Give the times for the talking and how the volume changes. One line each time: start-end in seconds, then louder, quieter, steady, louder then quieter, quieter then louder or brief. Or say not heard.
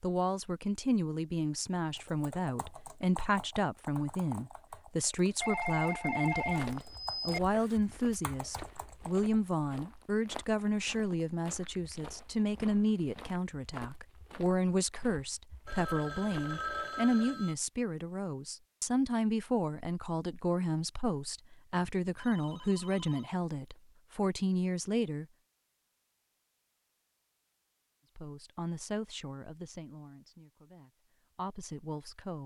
0.0-25.2 steady
28.1-32.4 quieter then louder.